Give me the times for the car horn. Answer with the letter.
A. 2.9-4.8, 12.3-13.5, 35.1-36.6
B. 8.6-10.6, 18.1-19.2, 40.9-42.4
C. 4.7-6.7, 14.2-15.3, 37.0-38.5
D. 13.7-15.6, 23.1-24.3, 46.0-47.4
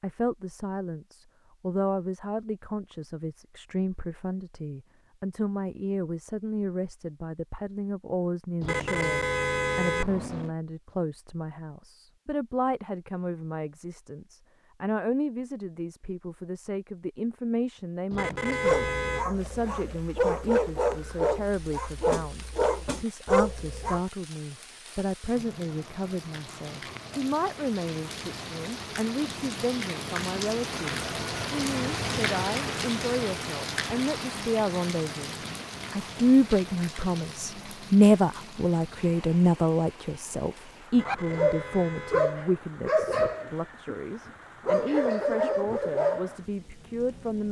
B.